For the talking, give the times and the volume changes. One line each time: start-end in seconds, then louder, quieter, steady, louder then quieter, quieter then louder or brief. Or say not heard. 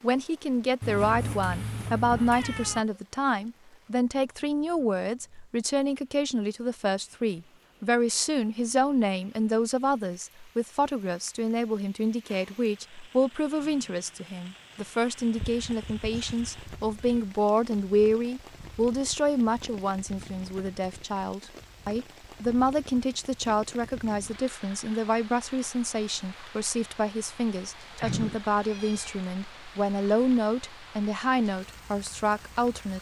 0.0-32.9 steady.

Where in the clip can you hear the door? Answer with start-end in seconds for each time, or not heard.
not heard.